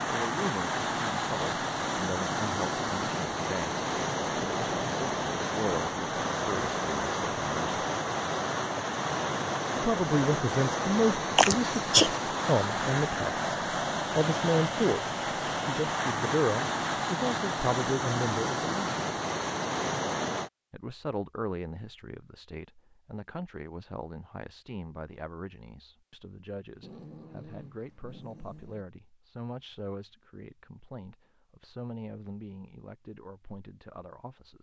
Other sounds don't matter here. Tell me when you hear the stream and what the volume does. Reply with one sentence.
The stream can be heard from 0.0 to 20.5 s, at a steady volume.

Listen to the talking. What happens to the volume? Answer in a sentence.
The loudness of the talking goes up, then down.